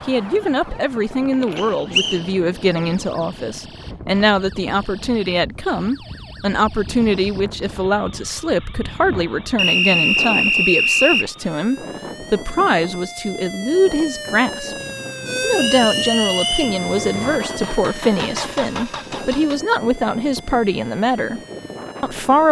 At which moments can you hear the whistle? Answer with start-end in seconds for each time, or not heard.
1.6-2.2, 9.6-11.3, 15.7-16.6.